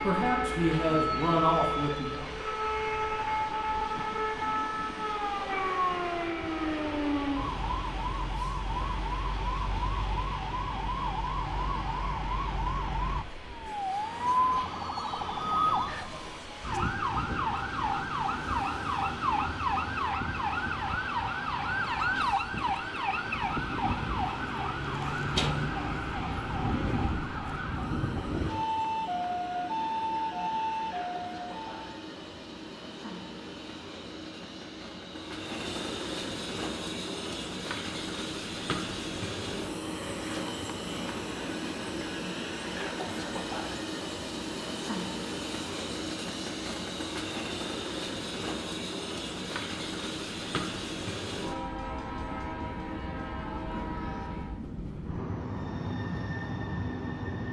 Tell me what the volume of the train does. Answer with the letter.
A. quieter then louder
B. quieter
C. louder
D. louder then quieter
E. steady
C.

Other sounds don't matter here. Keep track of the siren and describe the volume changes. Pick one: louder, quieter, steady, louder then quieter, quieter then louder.
steady.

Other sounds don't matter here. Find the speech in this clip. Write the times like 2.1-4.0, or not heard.
0.0-2.3.